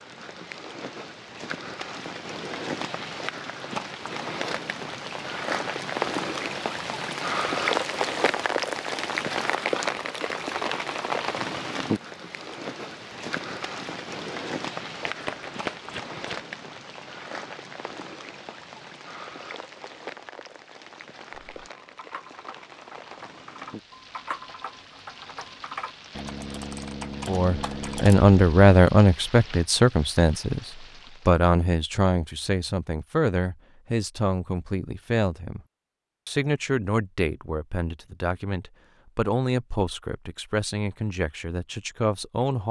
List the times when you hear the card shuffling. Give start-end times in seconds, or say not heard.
15.0-16.5.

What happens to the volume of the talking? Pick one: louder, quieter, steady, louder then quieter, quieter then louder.
quieter.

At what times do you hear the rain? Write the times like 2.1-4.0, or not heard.
0.0-31.4.